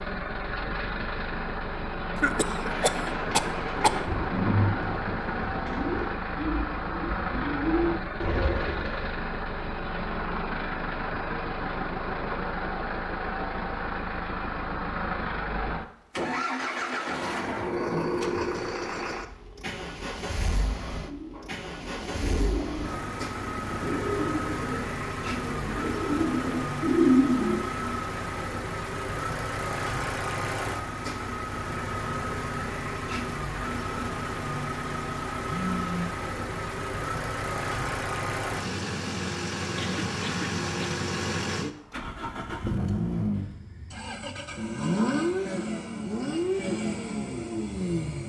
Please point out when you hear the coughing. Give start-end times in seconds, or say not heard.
2.1-4.1, 39.8-41.0.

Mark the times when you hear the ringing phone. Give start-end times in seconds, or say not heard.
17.9-18.7, 35.5-36.1.